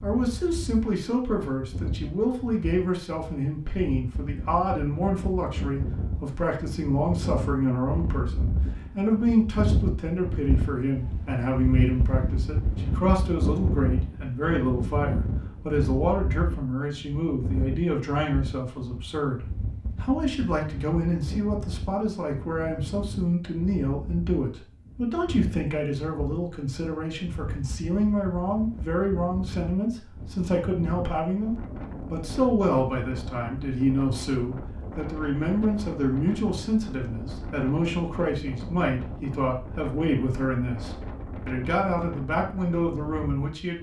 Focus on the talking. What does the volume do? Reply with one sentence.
The volume of the talking stays about the same.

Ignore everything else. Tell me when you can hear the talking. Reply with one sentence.
The talking can be heard from 0.0 to 43.7 s.